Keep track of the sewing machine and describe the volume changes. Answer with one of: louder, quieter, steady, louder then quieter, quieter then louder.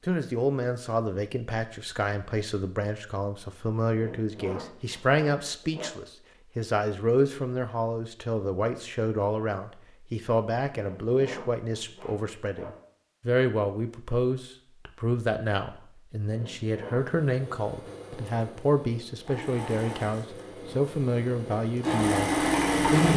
louder.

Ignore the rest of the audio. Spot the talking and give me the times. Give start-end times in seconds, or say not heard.
0.1-23.1.